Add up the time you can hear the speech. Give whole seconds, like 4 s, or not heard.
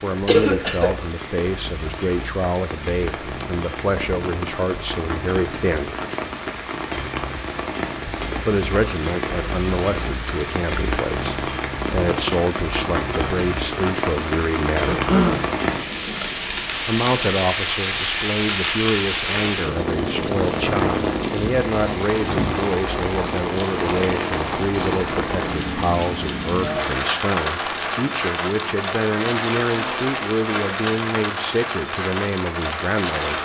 29 s.